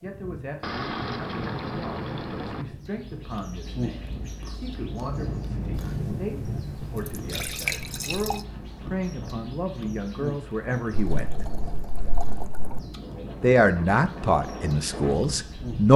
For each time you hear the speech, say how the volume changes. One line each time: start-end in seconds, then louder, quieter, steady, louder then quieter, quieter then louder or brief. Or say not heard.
0.0-11.4 louder
13.4-15.9 brief.